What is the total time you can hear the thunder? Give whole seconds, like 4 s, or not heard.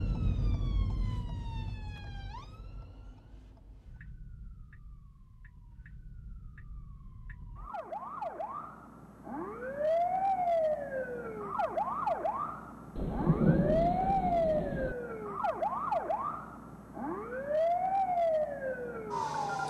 2 s.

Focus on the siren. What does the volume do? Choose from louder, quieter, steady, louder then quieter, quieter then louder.
quieter then louder.